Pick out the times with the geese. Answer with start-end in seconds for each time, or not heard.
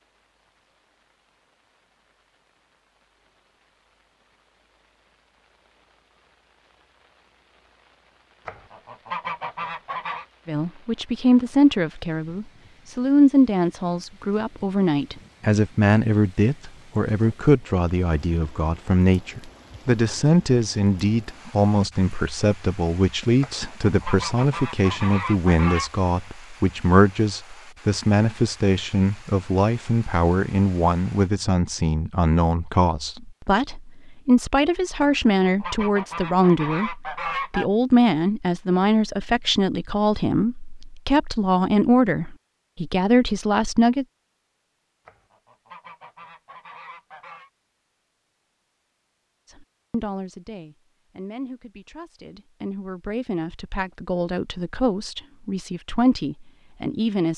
8.4-10.2, 23.4-25.9, 35.0-37.6, 45.0-47.5.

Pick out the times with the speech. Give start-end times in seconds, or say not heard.
10.4-44.0, 49.5-57.3.